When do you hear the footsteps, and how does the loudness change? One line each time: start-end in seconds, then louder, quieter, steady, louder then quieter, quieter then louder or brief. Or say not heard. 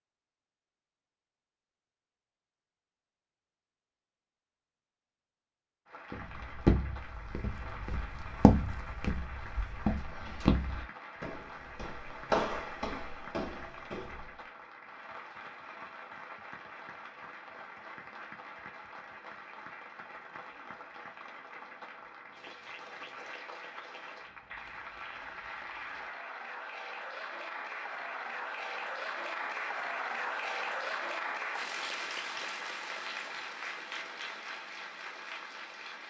6.1-14.3 quieter.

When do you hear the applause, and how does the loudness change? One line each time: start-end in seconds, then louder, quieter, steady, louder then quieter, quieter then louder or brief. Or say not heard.
5.8-36.0 louder.